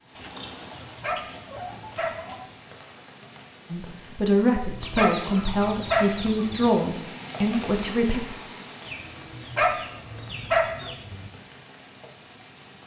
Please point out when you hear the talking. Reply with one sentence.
The talking can be heard from 3.7 to 8.2 s.